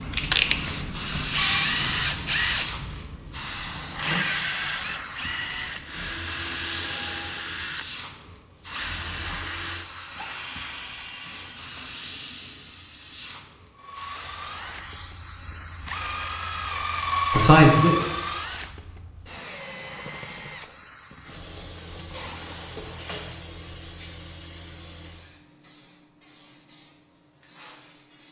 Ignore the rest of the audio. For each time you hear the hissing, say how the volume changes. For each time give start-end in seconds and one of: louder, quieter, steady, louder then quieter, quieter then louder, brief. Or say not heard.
0.1-28.2 quieter.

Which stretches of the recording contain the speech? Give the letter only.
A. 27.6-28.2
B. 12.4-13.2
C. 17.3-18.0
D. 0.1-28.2
C.